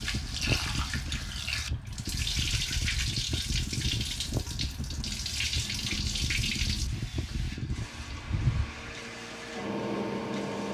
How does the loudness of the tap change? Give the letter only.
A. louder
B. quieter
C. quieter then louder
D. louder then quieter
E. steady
B.